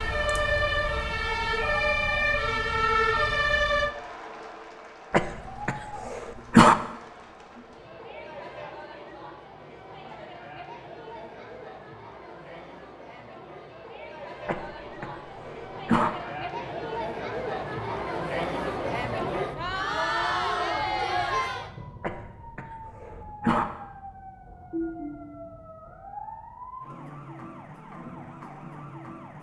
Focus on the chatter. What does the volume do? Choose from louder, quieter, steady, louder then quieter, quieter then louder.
louder.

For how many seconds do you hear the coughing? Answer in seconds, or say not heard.
5 s.